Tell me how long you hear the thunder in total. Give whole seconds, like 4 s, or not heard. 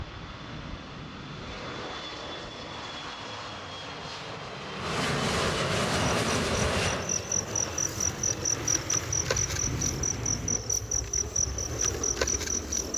2 s.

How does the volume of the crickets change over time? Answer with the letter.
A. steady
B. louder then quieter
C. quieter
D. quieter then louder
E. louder
A.